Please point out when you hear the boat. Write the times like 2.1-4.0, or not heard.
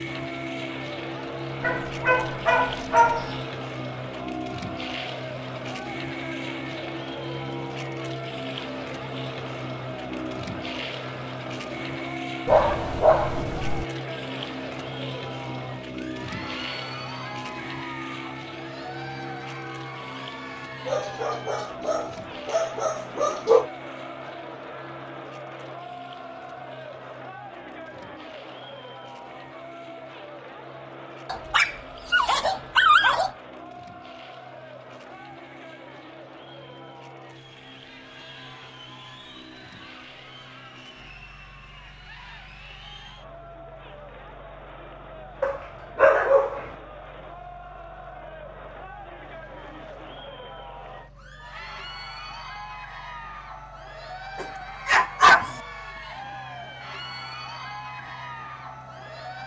0.0-59.4.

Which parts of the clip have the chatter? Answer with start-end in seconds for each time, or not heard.
0.0-59.4.